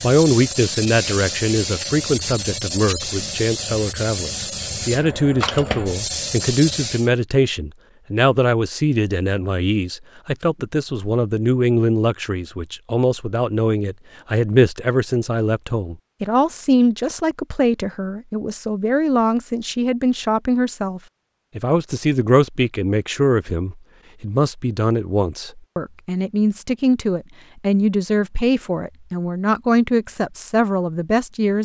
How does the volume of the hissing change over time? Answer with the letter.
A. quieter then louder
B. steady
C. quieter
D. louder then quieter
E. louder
B.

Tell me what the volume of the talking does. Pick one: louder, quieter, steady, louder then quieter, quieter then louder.
steady.